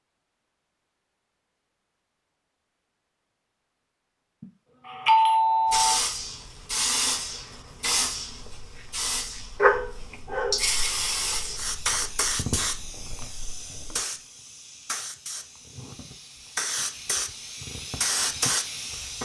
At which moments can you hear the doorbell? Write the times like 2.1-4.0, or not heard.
4.4-6.0.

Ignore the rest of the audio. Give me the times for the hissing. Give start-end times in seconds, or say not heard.
5.7-19.1.